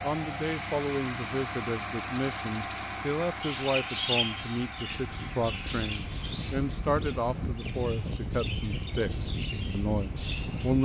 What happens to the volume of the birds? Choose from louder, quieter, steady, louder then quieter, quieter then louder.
quieter.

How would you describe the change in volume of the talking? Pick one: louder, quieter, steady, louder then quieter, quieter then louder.
steady.